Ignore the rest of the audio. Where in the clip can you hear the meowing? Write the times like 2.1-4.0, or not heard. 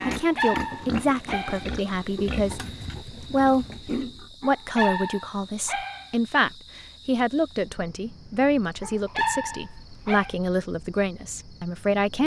not heard.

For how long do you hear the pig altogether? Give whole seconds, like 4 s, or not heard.
4 s.